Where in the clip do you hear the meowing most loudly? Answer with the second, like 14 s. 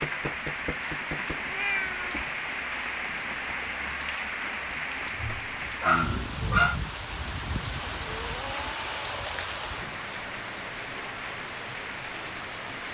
2 s.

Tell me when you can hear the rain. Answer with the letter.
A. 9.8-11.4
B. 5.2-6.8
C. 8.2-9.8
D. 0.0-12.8
D.